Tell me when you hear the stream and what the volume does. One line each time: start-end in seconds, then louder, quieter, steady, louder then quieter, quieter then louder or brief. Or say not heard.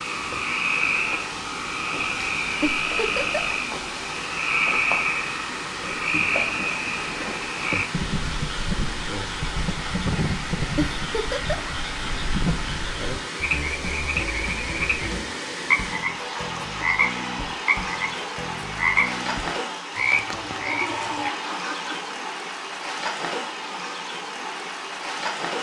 0.0-25.5 steady.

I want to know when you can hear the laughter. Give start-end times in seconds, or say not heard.
2.6-3.5, 10.8-11.7, 20.6-22.1.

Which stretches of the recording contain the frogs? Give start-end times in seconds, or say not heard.
0.0-21.3.